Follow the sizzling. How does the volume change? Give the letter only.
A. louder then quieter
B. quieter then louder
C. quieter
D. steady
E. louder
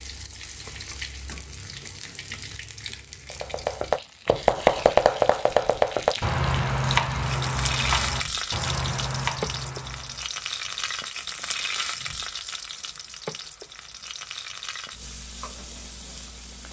A.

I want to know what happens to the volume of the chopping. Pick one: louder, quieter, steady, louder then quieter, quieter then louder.
quieter.